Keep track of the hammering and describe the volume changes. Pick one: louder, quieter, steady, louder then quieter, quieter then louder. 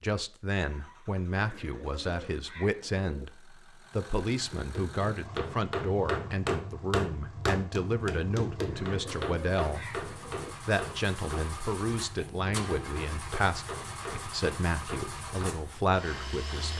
quieter.